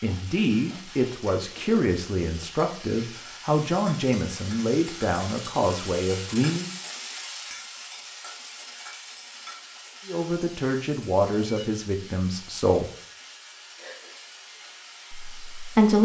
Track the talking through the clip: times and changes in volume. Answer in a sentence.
You can hear the talking from 0.0 to 6.7 s, at a steady volume; briefly from 10.1 to 12.9 s; and briefly from 15.1 to 16.0 s.